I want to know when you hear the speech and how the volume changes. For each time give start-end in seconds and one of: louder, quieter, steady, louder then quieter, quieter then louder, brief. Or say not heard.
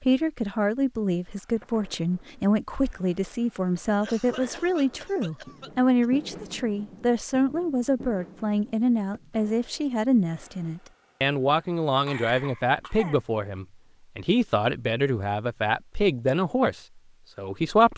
0.0-17.9 steady.